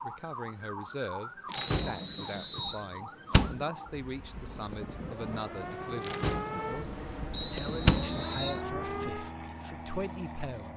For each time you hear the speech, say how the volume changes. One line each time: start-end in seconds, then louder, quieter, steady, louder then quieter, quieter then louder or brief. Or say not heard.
0.0-10.7 steady.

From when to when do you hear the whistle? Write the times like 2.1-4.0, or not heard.
1.6-2.9, 7.3-8.6.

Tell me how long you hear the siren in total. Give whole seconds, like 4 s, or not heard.
9 s.